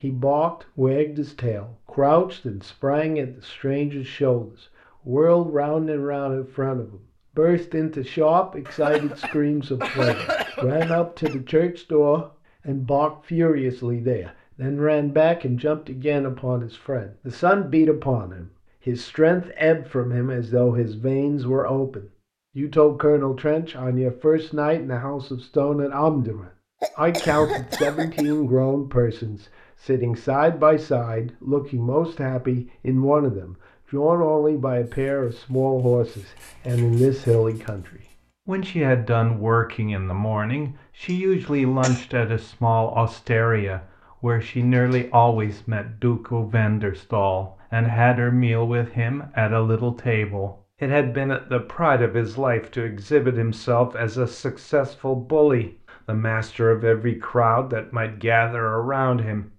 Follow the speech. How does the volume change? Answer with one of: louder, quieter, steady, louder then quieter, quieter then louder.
steady.